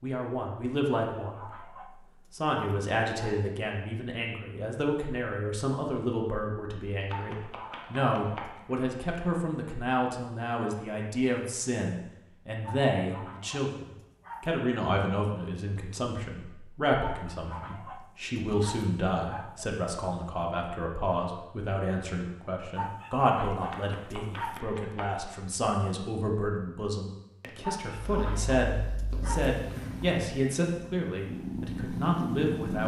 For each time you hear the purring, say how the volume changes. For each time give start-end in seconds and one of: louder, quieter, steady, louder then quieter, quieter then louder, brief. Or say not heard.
27.9-32.8 louder.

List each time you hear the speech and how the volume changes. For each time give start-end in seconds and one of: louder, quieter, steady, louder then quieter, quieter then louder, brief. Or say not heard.
0.0-1.7 brief
2.3-32.8 steady.